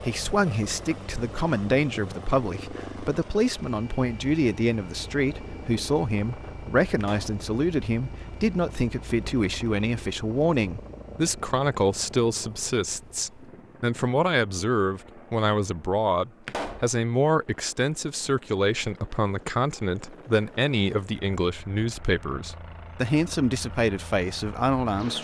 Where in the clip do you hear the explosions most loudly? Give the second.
17 s.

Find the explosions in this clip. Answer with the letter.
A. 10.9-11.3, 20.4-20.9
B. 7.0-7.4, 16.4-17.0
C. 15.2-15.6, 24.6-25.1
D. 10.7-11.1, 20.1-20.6
B.